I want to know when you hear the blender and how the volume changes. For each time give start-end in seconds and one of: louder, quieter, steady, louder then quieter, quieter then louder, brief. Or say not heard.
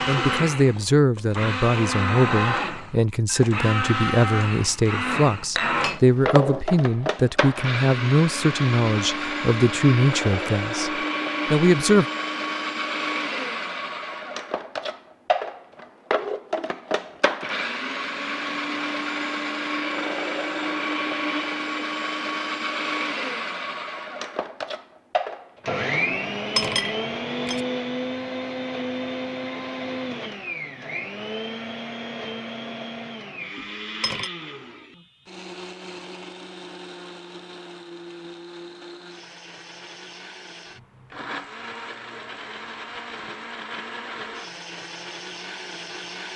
0.0-46.3 quieter.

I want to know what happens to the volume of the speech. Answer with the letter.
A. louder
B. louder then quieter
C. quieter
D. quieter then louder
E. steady
E.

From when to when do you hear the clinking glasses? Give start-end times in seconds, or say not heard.
5.5-6.7, 26.1-27.6, 33.5-34.3.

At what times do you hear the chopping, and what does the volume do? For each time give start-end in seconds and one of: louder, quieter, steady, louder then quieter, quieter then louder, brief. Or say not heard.
not heard.